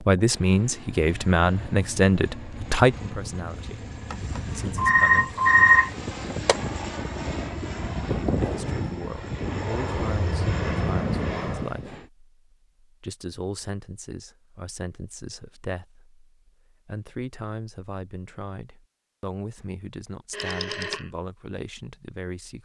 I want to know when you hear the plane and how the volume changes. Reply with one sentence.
The plane can be heard from 0.0 to 12.0 s, getting louder.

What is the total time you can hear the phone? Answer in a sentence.
You can hear the phone for 3 seconds altogether.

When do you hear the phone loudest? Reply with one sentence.
The loudest moment of the phone is at 6 seconds.